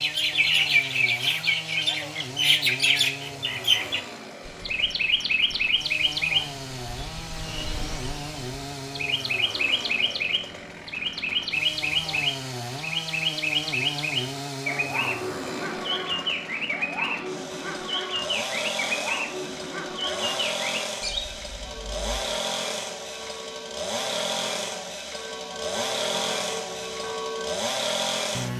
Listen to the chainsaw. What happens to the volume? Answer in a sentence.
The loudness of the chainsaw goes up.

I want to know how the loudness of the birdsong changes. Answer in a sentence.
The loudness of the birdsong goes down.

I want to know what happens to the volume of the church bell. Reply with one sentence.
The loudness of the church bell goes up.